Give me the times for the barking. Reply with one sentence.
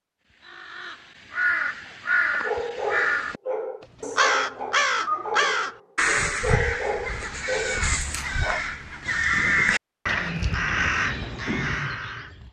The barking can be heard from 2.4 to 8.7 s.